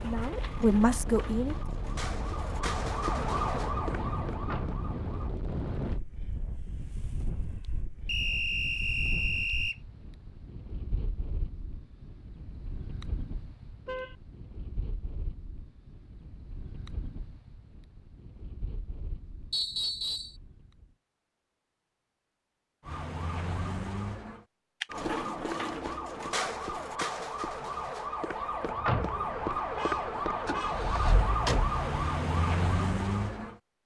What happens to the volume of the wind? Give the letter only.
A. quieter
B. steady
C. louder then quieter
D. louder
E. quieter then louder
A.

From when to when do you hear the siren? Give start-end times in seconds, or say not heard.
0.0-5.3, 22.9-33.5.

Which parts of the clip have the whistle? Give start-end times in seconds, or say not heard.
8.1-9.8, 19.5-20.4.